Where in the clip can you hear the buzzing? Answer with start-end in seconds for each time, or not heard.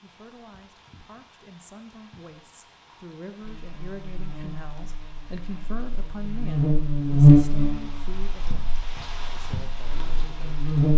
3.4-10.9.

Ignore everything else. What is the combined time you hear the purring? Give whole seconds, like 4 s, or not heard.
not heard.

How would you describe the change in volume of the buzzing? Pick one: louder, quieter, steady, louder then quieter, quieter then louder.
louder then quieter.